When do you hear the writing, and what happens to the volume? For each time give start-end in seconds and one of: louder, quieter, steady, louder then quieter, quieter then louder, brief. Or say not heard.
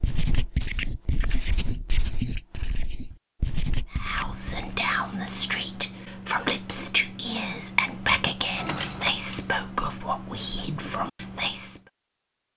0.0-4.8 steady.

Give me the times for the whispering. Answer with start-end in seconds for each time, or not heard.
4.0-11.8.